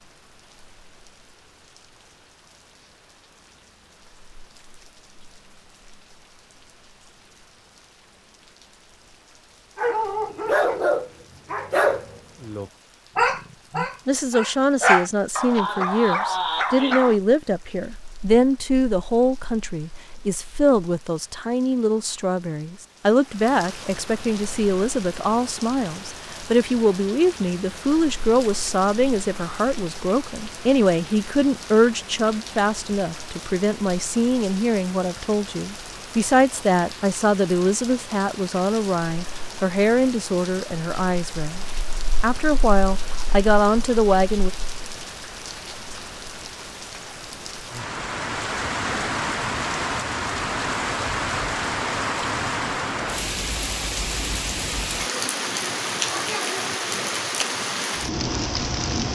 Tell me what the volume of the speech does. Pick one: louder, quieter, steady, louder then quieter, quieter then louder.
steady.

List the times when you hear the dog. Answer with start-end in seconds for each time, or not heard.
9.8-17.1.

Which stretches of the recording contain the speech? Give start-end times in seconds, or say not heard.
13.8-44.5.